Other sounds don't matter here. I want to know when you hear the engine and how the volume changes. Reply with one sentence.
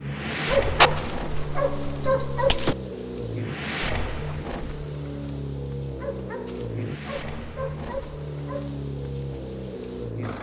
You can hear the engine from 0.0 to 10.3 s, at a steady volume.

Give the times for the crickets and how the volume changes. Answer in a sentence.
You can hear the crickets from 0.0 to 10.3 s, getting quieter then louder.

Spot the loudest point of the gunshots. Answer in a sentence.
The loudest moment of the gunshots is at 1 second.